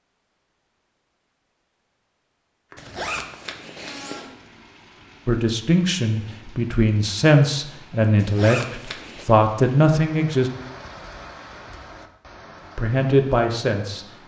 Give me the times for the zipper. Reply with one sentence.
The zipper can be heard from 2.8 to 4.3 s and from 8.2 to 9.2 s.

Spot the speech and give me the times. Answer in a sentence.
You can hear the speech from 5.2 to 10.5 s and from 12.8 to 14.1 s.